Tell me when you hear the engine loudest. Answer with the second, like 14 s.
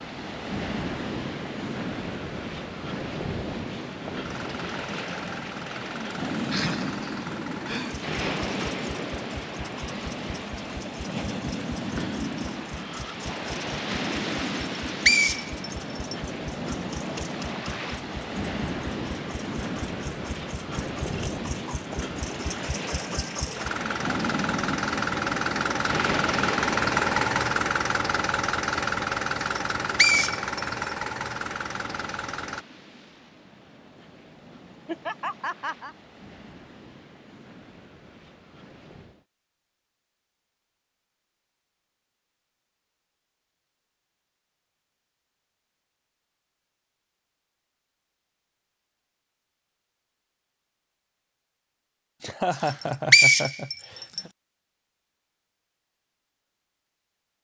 27 s.